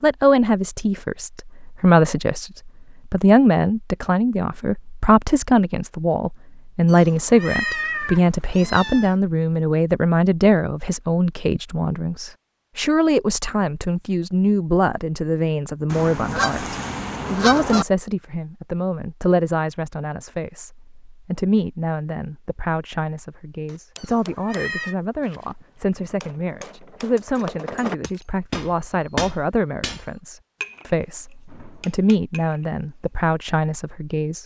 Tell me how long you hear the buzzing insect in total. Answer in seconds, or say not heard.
not heard.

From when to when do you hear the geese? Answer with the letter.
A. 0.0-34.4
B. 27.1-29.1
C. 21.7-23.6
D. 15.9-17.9
D.